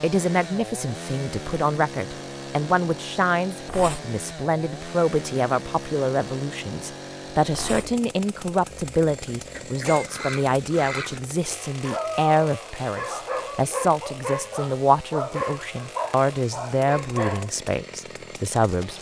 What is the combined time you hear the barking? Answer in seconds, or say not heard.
6 s.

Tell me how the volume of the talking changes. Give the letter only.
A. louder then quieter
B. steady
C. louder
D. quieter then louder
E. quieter
B.